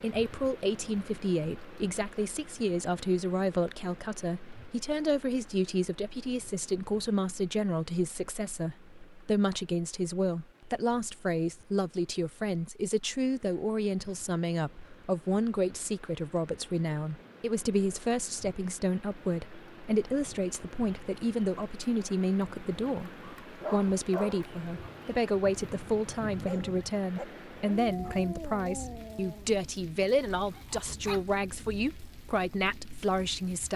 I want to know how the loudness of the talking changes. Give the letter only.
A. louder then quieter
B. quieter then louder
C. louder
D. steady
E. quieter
D.